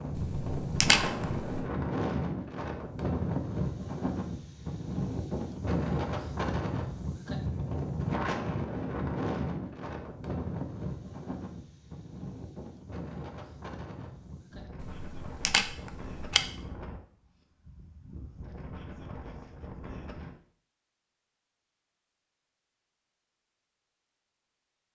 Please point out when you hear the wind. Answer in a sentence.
You can hear the wind from 0.0 to 20.4 s.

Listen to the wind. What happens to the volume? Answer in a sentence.
The volume of the wind goes down.